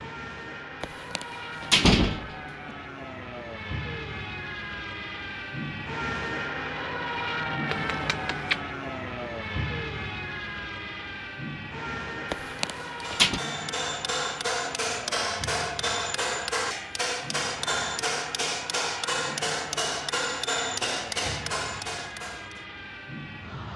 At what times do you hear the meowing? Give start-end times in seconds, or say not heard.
7.7-8.6.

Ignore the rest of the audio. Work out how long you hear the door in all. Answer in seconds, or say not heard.
3 s.